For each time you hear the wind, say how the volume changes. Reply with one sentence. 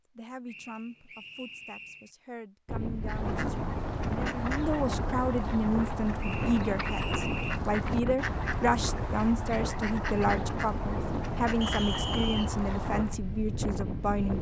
You can hear the wind from 2.6 to 14.3 s, at a steady volume.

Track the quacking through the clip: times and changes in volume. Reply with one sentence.
The quacking can be heard from 3.0 to 13.2 s, at a steady volume.